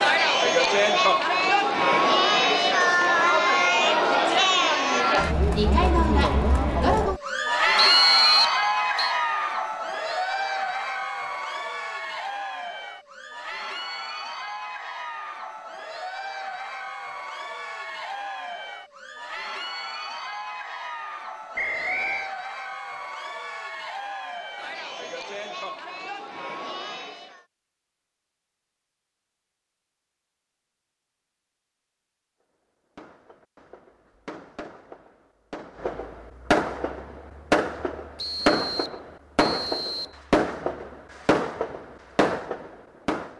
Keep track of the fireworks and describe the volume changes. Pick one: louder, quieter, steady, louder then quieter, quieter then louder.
louder.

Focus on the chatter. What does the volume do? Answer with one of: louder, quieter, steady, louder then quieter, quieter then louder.
quieter.